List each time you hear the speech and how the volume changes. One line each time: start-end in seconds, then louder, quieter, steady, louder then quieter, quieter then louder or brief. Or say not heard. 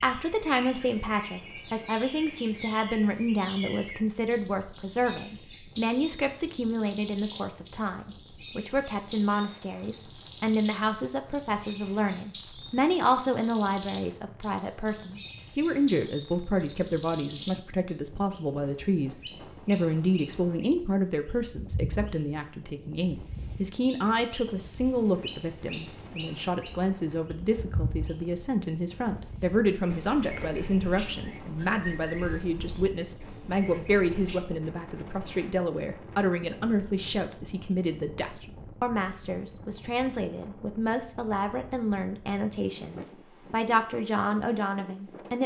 0.0-45.4 steady.